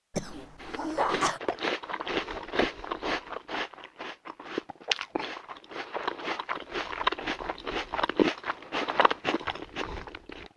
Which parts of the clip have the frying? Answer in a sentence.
You can't hear the frying here.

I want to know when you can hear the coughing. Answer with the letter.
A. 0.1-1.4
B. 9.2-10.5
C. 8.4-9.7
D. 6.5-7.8
A.